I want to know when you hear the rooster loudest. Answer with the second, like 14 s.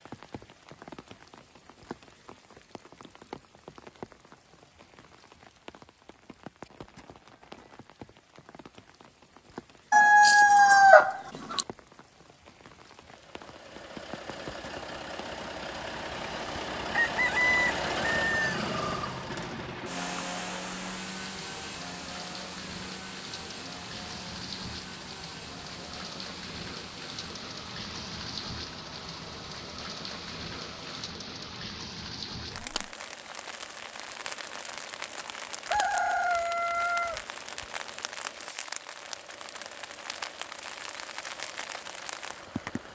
11 s.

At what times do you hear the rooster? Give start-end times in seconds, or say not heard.
9.9-11.6, 16.9-18.6, 35.7-37.6.